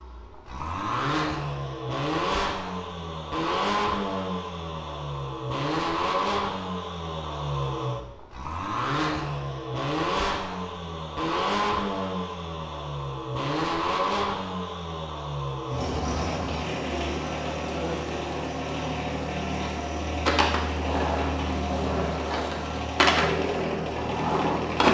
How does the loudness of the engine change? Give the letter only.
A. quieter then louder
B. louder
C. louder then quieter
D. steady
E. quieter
D.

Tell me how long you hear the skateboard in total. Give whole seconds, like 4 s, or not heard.
5 s.